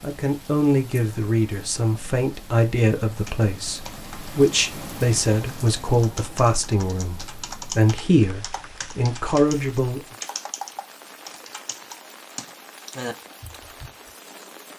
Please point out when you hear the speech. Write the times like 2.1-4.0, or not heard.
0.0-10.0.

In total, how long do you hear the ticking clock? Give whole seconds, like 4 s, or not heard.
not heard.